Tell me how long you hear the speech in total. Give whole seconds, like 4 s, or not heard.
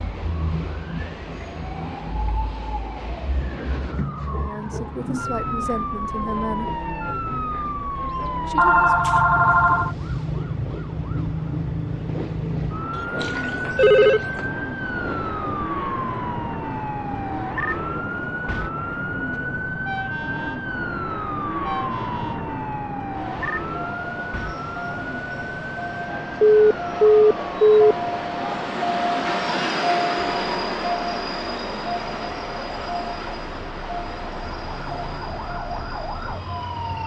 3 s.